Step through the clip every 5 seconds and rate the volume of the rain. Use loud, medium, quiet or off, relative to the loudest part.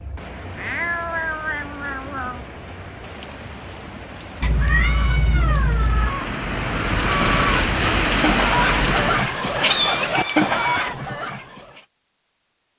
quiet, loud, off.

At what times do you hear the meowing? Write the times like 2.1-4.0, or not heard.
0.6-2.5, 4.4-6.1, 9.2-10.9.